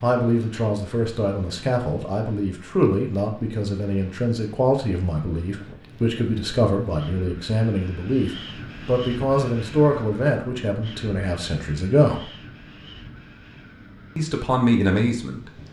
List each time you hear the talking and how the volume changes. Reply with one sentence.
The talking can be heard from 0.0 to 12.3 s, at a steady volume; and briefly from 14.2 to 15.5 s.